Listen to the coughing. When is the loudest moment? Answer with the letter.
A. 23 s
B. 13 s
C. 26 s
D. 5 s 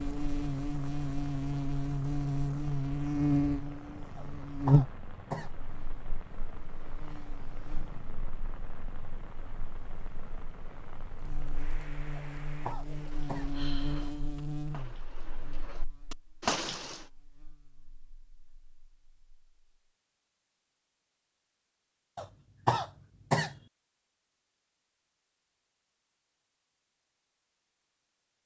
A.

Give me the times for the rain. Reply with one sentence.
You can hear the rain from 0.0 to 17.1 s.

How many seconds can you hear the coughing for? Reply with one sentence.
You can hear the coughing for 4 seconds altogether.